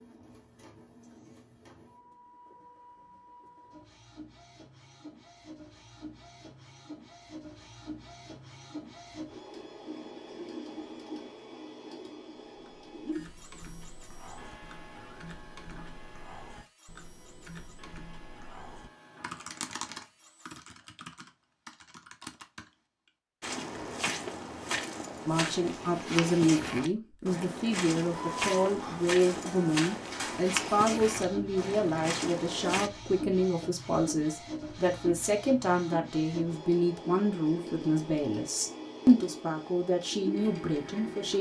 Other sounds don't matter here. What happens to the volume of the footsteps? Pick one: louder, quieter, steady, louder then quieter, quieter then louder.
steady.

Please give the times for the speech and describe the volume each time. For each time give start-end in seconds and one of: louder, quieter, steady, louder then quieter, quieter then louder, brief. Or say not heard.
25.2-41.3 steady.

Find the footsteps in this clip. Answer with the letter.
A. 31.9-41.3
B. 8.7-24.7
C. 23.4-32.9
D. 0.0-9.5
C.